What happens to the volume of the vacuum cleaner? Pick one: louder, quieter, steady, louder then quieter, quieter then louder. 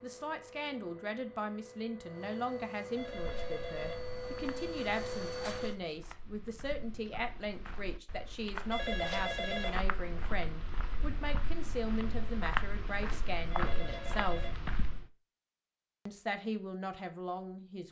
louder.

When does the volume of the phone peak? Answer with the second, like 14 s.
9 s.